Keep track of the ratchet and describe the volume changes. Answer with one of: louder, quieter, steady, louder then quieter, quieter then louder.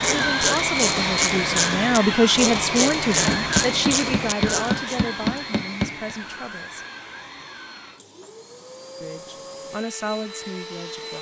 steady.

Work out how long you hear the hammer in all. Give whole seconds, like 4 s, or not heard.
3 s.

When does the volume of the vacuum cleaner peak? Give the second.
1 s.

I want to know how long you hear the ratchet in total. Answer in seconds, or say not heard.
5 s.